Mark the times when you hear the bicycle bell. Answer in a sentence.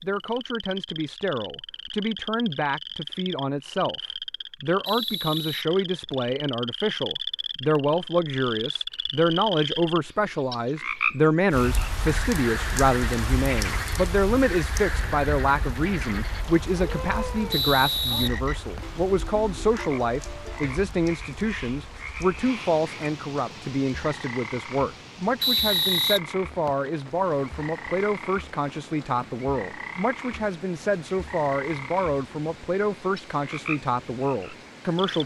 The bicycle bell can't be heard in this clip.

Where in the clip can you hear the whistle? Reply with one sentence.
You can hear the whistle from 4.8 to 6.3 s, from 17.5 to 19.0 s and from 25.4 to 26.9 s.